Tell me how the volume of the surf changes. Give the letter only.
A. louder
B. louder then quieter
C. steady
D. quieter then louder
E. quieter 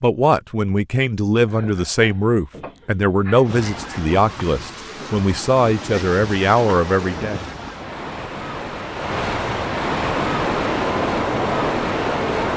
A.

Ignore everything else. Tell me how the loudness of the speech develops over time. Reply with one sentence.
The loudness of the speech stays about the same.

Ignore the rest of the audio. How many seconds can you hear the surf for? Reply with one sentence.
You can hear the surf for 9 seconds altogether.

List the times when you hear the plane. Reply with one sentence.
The plane can be heard from 10.0 to 12.5 s.